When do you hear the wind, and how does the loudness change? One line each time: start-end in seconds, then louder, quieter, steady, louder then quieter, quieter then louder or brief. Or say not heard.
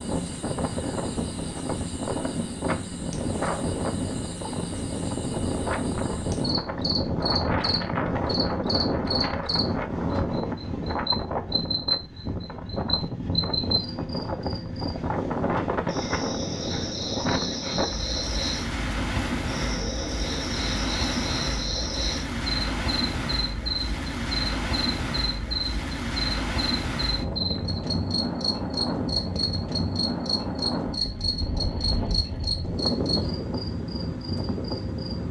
0.0-35.2 steady.